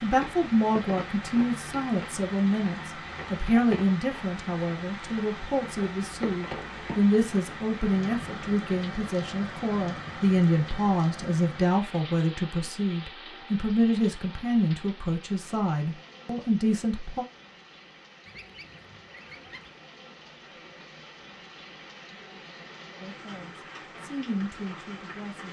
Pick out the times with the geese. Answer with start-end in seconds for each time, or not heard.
18.2-19.8.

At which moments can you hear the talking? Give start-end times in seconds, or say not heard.
0.0-17.2, 23.0-25.4.